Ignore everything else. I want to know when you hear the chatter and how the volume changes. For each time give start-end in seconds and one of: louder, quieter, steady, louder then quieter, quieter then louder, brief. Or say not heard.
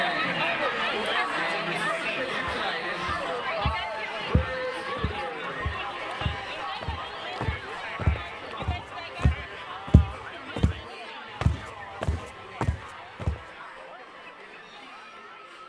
0.0-15.6 quieter.